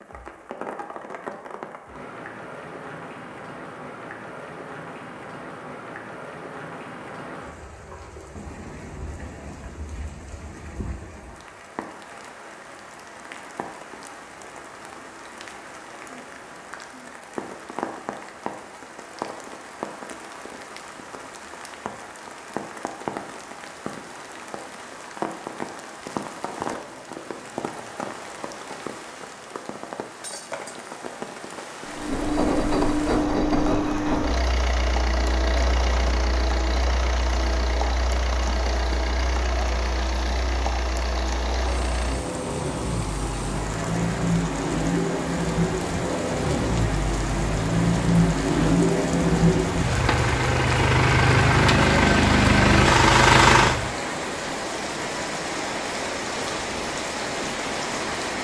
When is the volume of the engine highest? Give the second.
53 s.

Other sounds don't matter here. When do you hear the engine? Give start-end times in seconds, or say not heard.
31.9-54.0.